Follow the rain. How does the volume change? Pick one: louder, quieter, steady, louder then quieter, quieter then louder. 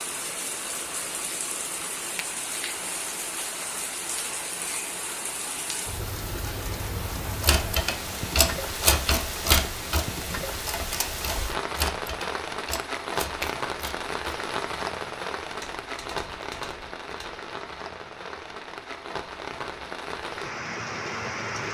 steady.